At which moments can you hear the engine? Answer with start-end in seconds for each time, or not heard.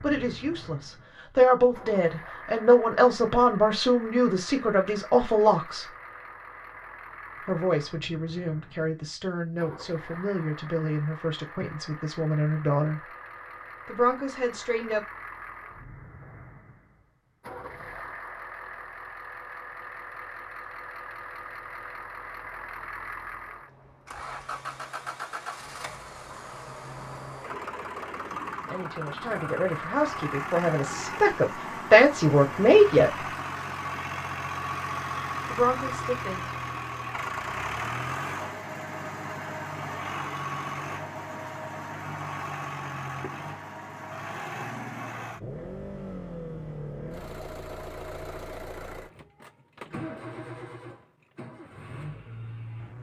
0.0-52.9.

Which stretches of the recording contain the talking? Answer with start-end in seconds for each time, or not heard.
0.0-5.9, 7.5-13.1, 13.8-15.1, 28.6-33.2, 35.5-36.5.